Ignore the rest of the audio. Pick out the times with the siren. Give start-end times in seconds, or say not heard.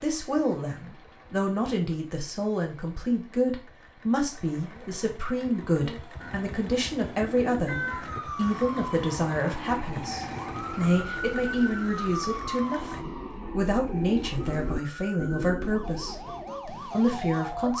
7.7-17.7.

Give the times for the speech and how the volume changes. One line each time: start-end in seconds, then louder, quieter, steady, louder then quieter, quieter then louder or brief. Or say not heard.
0.0-17.7 steady.